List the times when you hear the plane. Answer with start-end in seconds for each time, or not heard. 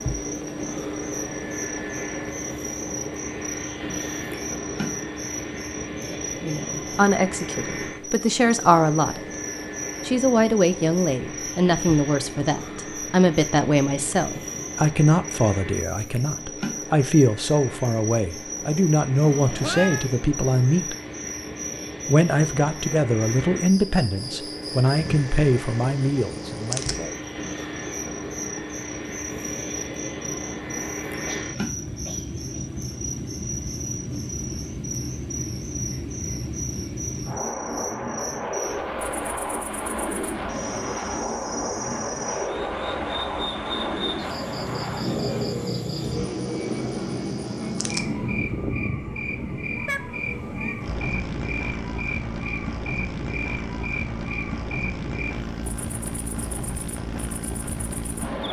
0.0-58.4.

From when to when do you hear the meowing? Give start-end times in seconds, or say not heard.
19.2-20.1, 49.9-50.8.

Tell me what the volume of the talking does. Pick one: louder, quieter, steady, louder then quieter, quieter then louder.
steady.